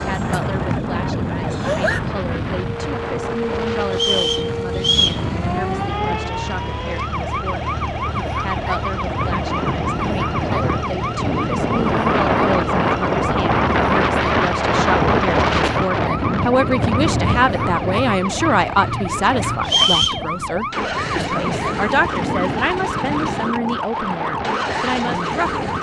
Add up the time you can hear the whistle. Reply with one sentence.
You can hear the whistle for 2 seconds altogether.